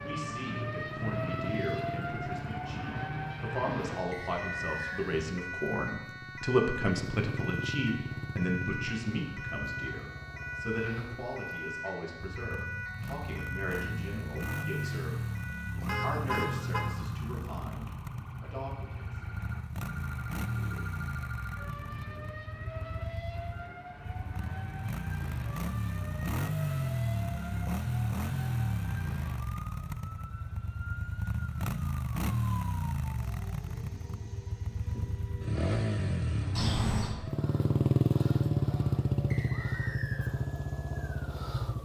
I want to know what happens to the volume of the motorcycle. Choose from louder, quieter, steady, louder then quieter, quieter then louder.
louder.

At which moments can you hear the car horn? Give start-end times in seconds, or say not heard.
15.8-16.9, 36.5-37.1.